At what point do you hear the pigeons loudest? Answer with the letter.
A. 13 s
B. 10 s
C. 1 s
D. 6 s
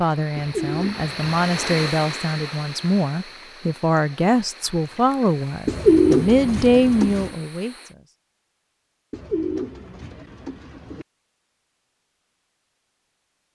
D.